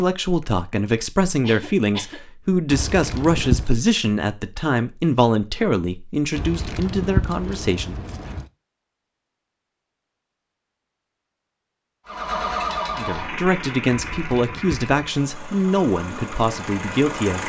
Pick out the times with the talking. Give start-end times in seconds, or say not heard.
0.0-8.0, 12.9-17.4.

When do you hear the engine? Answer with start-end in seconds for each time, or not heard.
12.1-17.4.